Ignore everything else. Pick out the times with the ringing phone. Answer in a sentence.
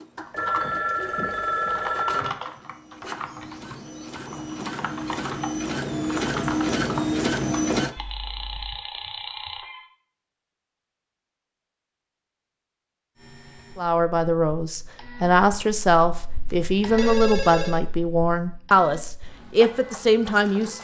You can hear the ringing phone from 0.3 to 2.5 s, from 7.9 to 9.8 s and from 16.4 to 17.8 s.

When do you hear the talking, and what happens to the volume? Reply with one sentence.
You can hear the talking from 13.8 to 20.7 s, at a steady volume.